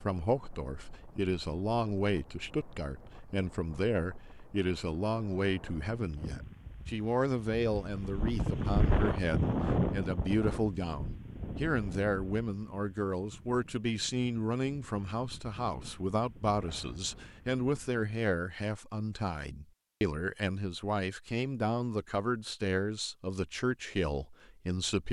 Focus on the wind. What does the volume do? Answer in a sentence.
The loudness of the wind goes up, then down.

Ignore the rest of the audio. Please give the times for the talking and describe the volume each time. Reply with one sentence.
You can hear the talking from 0.0 to 25.0 s, at a steady volume.